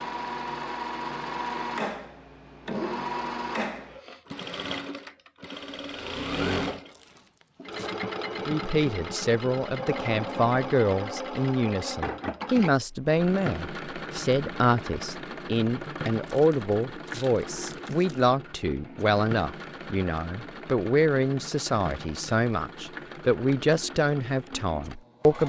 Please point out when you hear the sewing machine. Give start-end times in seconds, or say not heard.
0.0-25.4.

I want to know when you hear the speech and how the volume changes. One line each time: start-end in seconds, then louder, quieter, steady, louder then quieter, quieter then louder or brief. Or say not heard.
8.4-25.4 steady.